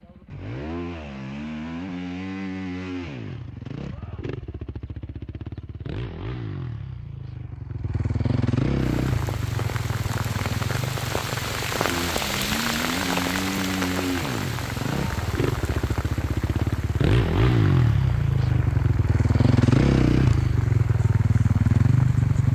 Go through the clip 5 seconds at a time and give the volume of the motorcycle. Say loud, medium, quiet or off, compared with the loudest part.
quiet, medium, medium, loud, loud.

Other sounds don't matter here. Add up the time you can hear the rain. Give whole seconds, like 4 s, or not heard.
14 s.